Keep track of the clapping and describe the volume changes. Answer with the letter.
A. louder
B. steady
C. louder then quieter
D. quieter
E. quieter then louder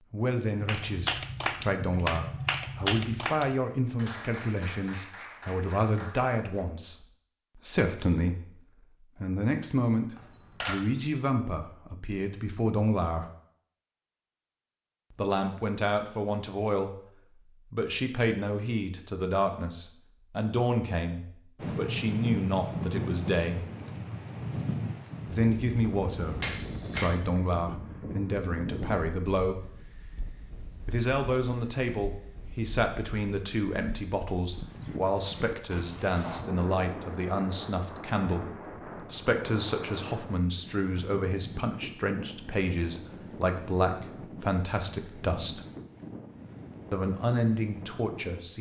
D.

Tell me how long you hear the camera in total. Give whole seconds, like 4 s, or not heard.
2 s.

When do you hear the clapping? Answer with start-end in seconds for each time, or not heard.
0.5-6.7.